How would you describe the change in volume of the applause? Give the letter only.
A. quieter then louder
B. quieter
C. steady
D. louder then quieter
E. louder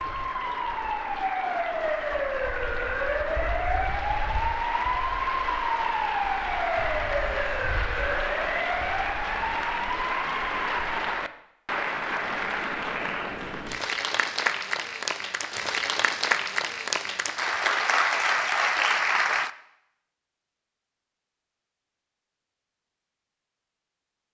E.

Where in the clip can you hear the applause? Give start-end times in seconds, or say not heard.
0.0-19.5.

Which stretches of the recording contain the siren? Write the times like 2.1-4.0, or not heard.
0.0-11.0.